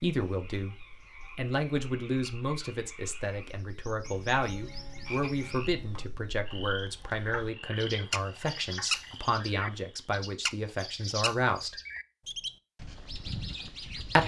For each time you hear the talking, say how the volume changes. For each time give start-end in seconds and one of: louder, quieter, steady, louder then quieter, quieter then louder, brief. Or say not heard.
0.0-0.8 brief
1.4-11.8 steady.